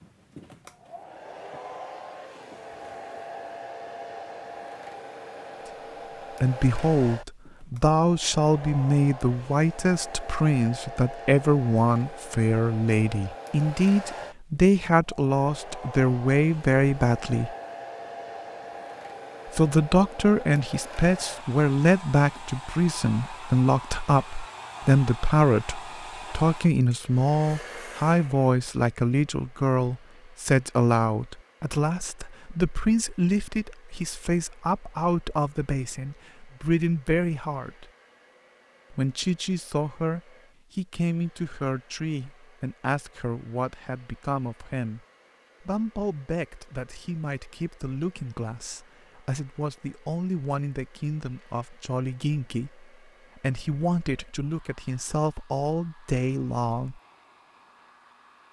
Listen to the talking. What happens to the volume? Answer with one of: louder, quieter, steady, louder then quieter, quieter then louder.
quieter.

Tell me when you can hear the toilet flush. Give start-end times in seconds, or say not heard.
not heard.